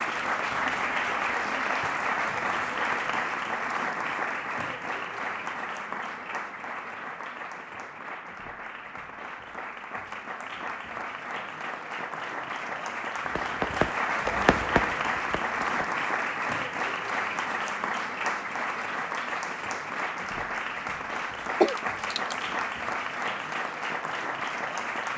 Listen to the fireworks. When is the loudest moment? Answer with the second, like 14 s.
15 s.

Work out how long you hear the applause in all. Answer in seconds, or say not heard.
25 s.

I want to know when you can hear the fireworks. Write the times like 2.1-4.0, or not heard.
13.3-15.8.